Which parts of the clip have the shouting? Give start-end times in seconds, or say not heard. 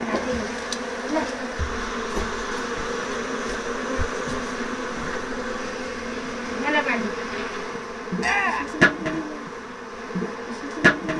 8.2-8.8.